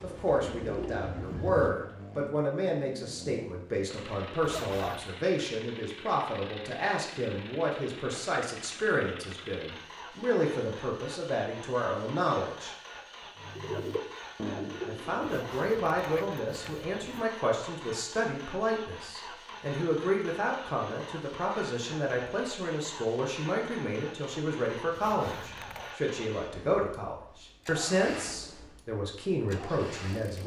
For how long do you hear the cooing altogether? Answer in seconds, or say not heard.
4 s.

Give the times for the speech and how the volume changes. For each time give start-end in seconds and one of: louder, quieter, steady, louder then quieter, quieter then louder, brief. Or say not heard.
0.0-12.8 steady
14.8-30.4 steady.